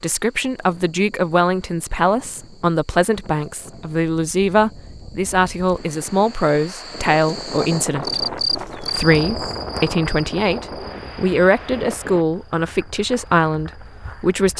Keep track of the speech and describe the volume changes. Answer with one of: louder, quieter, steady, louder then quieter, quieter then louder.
steady.